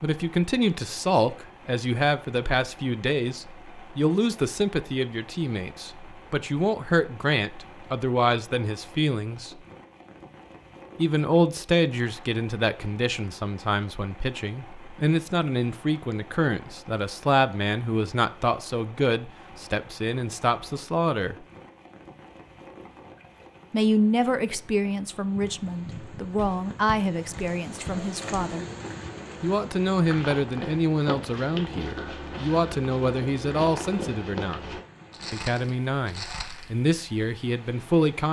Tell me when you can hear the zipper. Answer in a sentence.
You can't hear the zipper here.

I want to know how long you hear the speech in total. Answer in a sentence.
You can hear the speech for 33 seconds altogether.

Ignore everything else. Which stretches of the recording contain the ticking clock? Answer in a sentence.
You can't hear the ticking clock here.